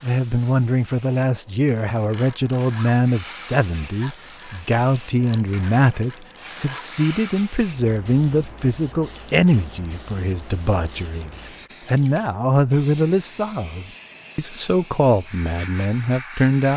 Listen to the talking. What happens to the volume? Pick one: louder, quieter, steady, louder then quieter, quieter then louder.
steady.